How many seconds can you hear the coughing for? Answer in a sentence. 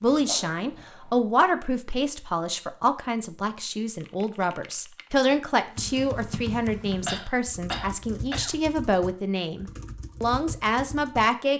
You can hear the coughing for 3 seconds altogether.